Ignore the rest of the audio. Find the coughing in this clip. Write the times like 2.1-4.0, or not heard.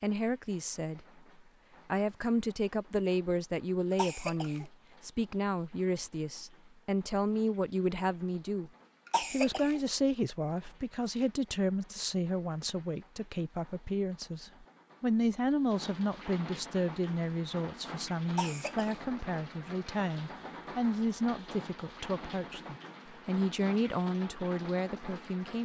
3.9-4.7, 9.1-9.8, 18.3-19.1.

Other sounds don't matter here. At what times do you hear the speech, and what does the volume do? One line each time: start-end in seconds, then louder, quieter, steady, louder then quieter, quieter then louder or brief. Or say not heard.
0.0-1.1 brief
1.9-25.5 steady.